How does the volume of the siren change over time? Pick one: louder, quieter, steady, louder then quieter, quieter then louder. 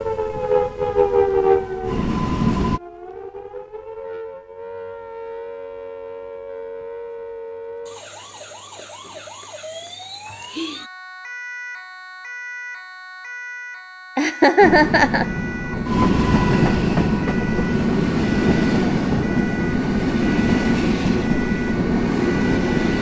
quieter.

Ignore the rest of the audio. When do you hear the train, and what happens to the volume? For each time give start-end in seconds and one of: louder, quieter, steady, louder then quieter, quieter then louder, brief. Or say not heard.
0.0-2.8 brief
14.6-22.9 steady.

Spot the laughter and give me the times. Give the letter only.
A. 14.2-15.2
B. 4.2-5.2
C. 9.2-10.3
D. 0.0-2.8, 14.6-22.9
A.